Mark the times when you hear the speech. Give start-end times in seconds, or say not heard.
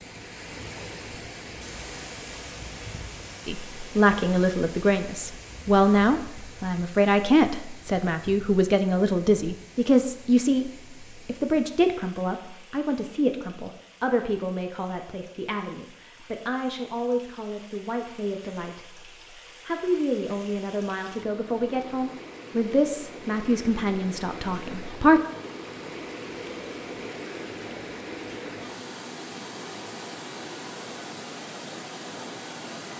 3.5-19.0, 19.6-25.2.